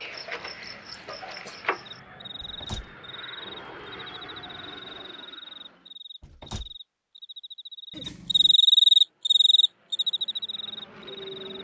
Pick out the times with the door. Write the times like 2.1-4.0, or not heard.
2.4-3.0, 6.2-6.8.